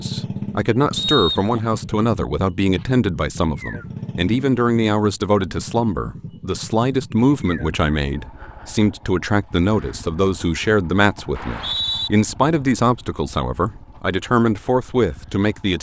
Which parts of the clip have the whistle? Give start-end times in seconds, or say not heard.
0.9-1.6, 11.3-12.1.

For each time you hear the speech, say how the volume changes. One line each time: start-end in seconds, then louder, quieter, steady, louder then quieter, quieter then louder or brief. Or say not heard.
0.0-15.7 steady.